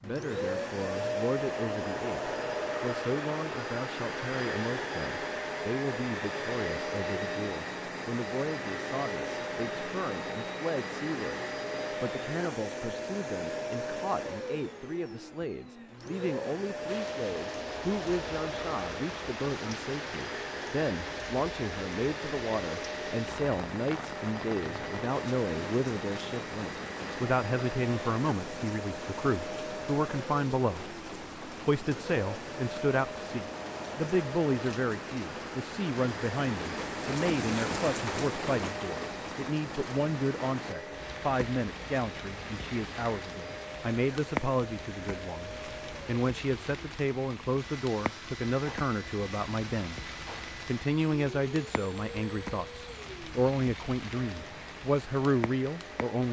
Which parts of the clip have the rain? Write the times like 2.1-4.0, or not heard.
16.9-56.2.